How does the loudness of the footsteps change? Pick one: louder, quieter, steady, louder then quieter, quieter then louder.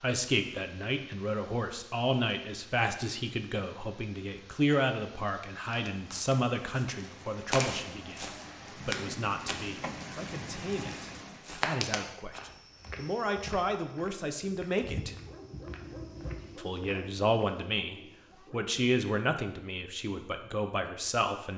quieter.